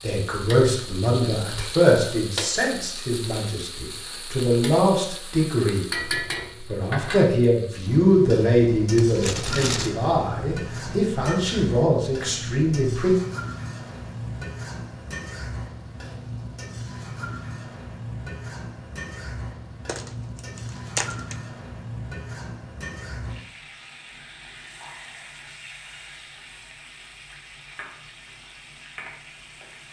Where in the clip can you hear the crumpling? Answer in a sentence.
You can hear the crumpling from 8.9 to 9.9 s and from 19.9 to 21.4 s.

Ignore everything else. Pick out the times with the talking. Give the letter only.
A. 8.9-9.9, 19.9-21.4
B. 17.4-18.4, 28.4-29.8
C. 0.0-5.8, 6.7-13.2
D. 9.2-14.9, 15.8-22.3
C.